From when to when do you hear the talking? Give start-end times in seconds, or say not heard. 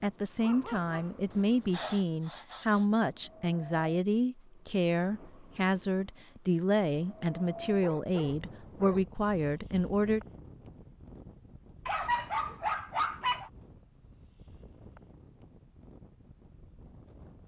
0.0-10.2.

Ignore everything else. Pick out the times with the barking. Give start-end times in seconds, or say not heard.
0.4-1.1, 7.8-9.6, 11.8-13.5.